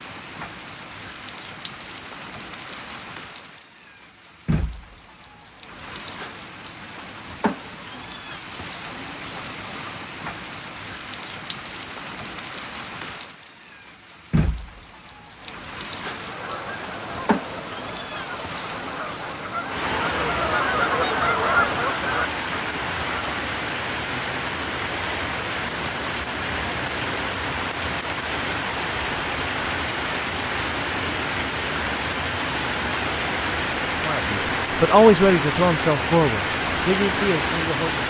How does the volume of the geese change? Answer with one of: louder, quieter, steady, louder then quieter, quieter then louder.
louder.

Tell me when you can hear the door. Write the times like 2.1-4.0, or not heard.
not heard.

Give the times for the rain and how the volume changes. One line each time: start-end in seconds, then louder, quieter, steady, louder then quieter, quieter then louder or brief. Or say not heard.
0.0-38.0 louder.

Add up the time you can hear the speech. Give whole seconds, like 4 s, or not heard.
4 s.